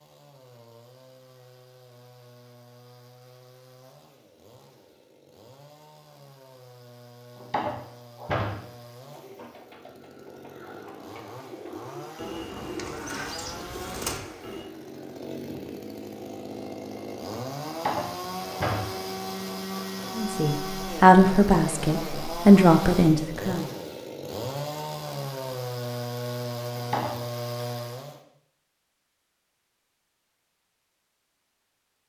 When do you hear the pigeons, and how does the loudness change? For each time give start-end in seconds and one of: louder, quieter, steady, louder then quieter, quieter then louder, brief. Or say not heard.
9.1-14.7 louder.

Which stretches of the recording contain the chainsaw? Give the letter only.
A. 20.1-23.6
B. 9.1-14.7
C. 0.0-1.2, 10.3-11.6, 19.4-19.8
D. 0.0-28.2
D.